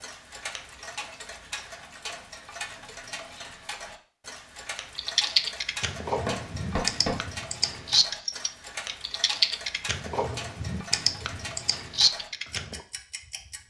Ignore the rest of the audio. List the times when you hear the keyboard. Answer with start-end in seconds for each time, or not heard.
5.0-12.8.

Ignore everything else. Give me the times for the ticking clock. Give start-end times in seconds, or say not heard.
0.0-13.6.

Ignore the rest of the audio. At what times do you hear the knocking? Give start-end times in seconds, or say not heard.
6.2-7.2.